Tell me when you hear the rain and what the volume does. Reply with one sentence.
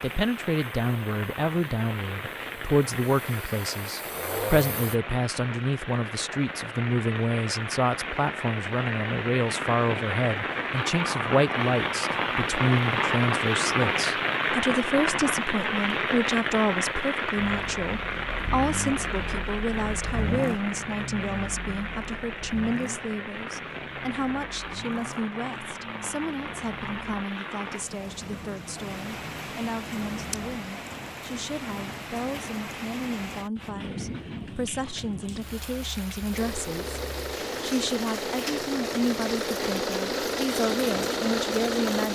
You can hear the rain from 0.0 to 42.0 s, getting louder then quieter.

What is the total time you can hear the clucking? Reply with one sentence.
The clucking can't be heard in this clip.